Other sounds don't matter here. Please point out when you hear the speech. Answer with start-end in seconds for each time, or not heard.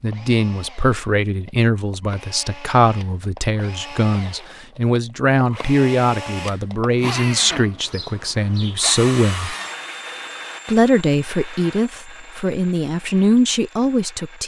0.0-9.6, 10.7-14.4.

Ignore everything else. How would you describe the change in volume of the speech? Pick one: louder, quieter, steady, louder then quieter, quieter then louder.
steady.